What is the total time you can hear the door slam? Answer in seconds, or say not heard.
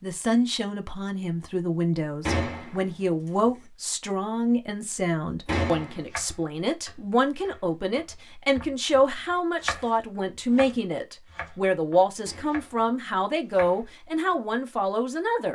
2 s.